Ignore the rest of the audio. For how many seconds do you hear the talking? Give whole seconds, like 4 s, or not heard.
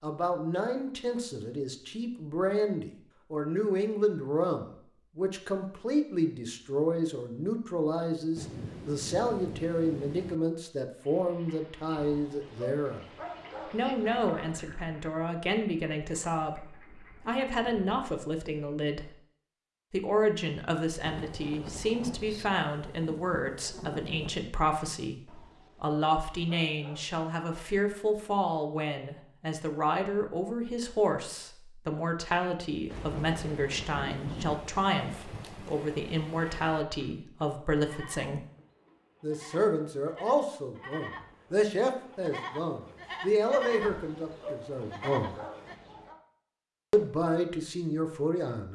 45 s.